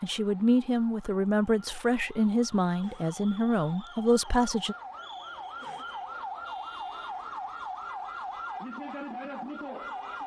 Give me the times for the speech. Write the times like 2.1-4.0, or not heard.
0.0-4.8.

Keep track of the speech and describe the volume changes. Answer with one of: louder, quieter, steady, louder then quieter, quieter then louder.
steady.